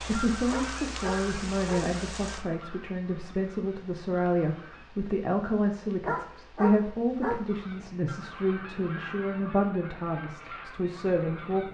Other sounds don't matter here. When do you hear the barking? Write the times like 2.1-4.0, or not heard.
0.5-1.9, 6.0-7.4.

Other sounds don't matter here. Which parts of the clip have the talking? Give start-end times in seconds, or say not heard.
0.0-11.6.